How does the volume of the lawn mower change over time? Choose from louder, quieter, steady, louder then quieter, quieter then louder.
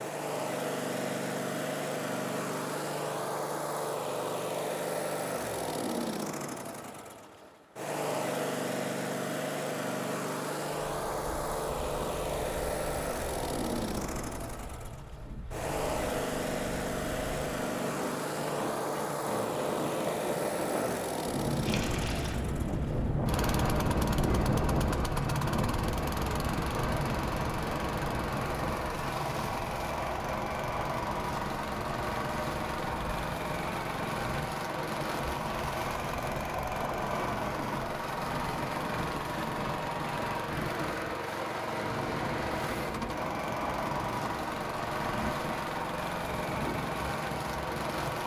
steady.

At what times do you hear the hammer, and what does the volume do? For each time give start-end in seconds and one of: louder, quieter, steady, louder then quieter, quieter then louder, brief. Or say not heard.
not heard.